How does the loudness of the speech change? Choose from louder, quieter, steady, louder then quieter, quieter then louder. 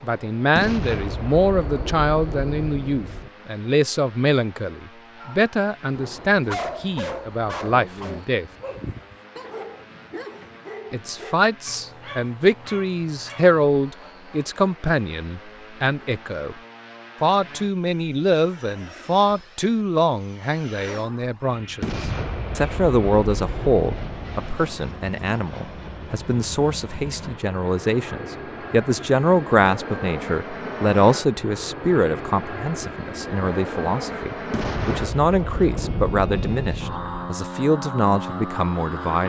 steady.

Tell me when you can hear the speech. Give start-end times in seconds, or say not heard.
0.0-8.4, 10.9-16.6, 17.2-39.2.